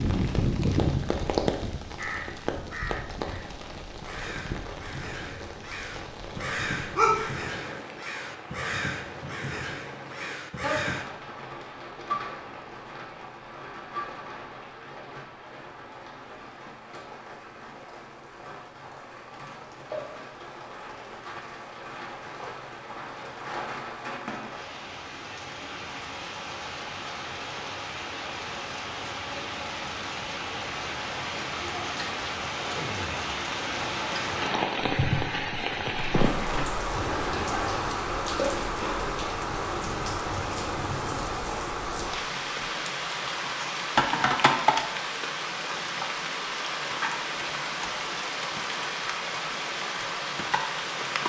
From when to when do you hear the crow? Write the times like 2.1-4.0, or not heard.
1.9-11.1.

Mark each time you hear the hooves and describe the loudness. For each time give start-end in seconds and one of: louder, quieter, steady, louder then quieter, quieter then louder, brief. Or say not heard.
33.9-41.4 quieter.